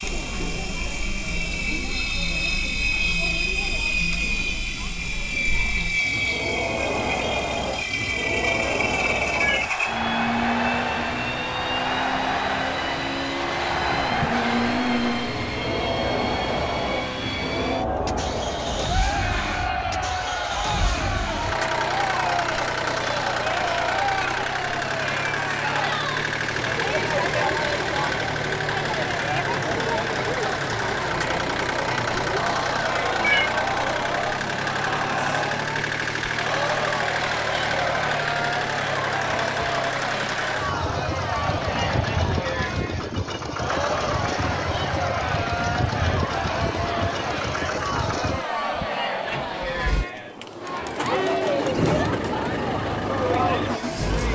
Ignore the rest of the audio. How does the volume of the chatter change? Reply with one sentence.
The volume of the chatter stays about the same.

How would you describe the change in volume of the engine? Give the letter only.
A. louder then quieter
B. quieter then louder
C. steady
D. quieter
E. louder
C.